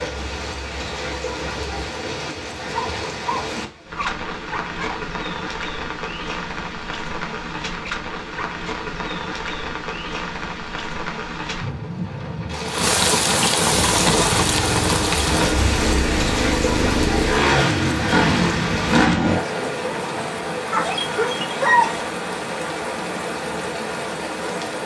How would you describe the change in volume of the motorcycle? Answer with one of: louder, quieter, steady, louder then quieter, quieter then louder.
louder.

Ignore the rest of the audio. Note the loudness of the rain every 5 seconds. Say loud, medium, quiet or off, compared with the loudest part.
medium, medium, loud, loud, medium.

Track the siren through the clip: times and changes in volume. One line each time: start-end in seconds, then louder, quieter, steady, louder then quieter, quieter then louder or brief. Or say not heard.
not heard.